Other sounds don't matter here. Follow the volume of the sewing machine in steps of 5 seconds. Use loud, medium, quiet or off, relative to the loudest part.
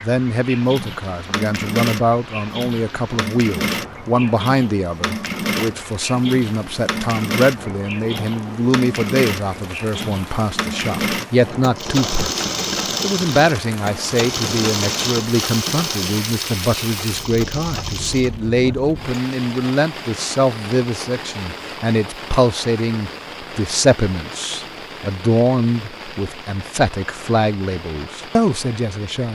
loud, loud, loud, loud, off, off.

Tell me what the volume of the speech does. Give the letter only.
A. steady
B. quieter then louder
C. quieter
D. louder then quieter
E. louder
A.